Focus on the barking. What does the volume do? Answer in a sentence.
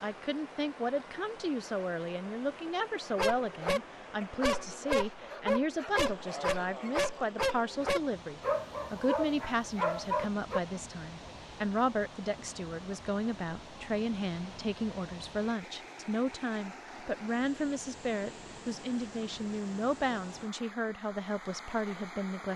The volume of the barking stays about the same.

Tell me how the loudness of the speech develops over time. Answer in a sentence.
The volume of the speech stays about the same.